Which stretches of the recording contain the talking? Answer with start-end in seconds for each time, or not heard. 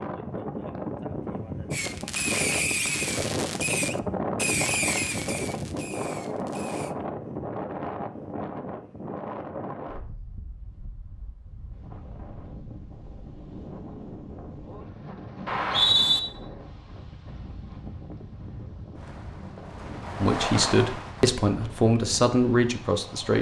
20.2-23.3.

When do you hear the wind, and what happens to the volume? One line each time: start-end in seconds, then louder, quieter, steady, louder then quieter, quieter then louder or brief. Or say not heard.
0.0-23.3 quieter.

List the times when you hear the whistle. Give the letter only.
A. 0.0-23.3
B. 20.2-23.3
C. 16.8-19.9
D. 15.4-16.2
D.